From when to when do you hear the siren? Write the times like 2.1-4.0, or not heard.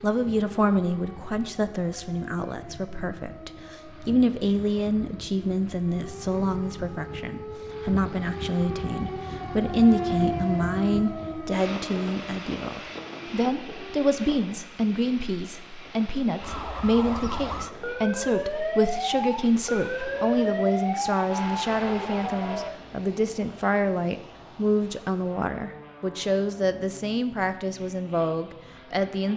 0.1-14.2, 16.4-22.8.